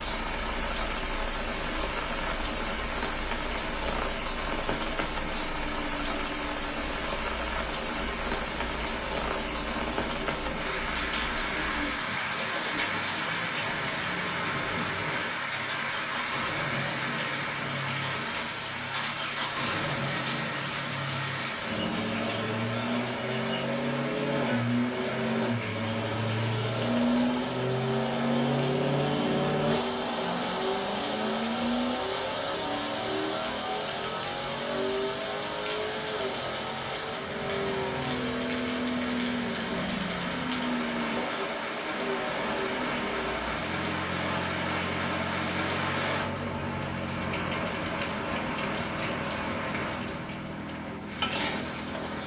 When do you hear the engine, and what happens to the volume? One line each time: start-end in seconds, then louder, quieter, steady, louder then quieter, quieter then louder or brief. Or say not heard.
0.0-52.2 louder then quieter.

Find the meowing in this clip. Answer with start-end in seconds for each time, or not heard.
not heard.